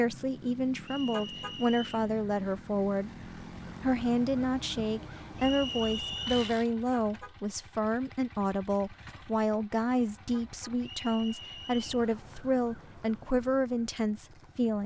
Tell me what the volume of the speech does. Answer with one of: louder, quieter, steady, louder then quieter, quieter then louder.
steady.